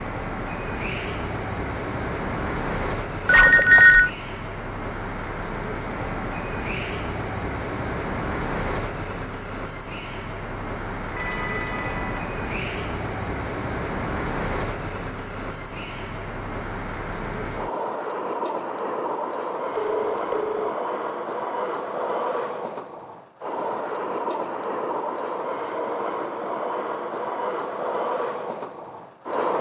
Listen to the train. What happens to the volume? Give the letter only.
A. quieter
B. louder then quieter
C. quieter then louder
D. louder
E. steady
E.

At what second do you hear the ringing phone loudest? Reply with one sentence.
The volume of the ringing phone peaks at 4 seconds.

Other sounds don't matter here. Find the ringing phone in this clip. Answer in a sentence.
You can hear the ringing phone from 3.2 to 4.1 s, from 11.2 to 12.2 s and from 19.9 to 20.6 s.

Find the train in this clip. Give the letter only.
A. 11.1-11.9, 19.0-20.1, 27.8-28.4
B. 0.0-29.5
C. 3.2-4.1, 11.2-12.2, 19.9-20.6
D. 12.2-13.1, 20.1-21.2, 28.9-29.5
B.